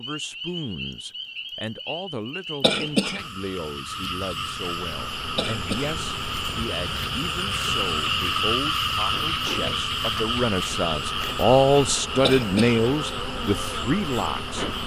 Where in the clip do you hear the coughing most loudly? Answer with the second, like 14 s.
3 s.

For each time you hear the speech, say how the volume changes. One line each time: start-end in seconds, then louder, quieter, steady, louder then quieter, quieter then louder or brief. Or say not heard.
0.0-14.7 louder.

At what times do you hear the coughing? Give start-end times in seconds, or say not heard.
2.6-3.2, 5.3-6.0, 12.2-12.8.